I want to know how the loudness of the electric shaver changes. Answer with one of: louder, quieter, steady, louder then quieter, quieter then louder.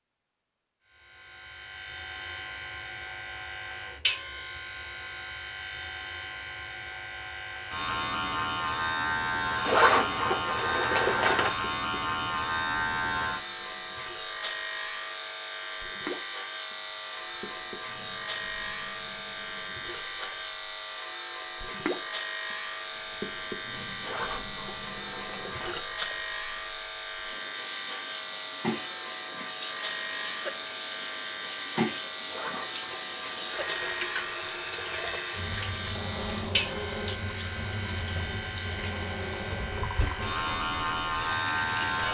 steady.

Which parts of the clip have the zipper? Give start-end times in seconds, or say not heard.
9.6-11.5, 24.0-25.8, 32.2-33.8.